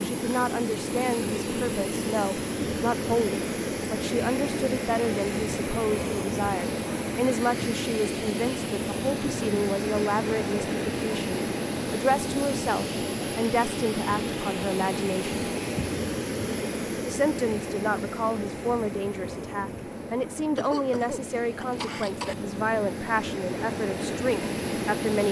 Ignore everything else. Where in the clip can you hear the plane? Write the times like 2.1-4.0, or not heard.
0.0-25.2.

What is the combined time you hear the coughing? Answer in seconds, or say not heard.
2 s.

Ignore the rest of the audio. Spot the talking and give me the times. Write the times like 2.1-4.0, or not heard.
0.0-15.3, 17.1-25.2.